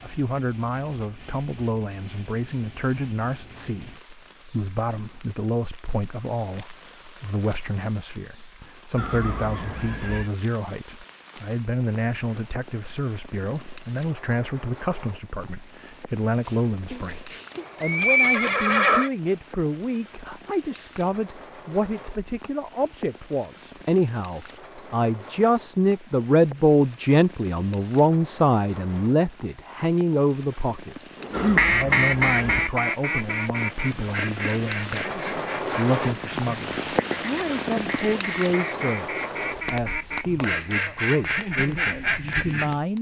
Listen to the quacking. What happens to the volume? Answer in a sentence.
The loudness of the quacking goes down, then up.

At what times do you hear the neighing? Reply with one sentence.
You can hear the neighing from 8.9 to 10.3 s, from 16.4 to 19.1 s and from 31.3 to 32.8 s.